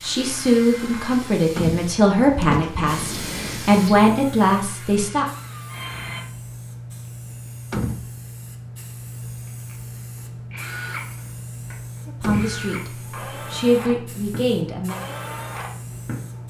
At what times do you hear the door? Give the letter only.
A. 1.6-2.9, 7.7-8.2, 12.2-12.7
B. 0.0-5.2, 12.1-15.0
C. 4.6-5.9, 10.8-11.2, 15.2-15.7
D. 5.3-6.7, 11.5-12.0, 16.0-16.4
A.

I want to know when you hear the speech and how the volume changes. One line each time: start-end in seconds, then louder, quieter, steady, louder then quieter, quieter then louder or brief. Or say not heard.
0.0-5.2 steady
12.1-15.0 brief.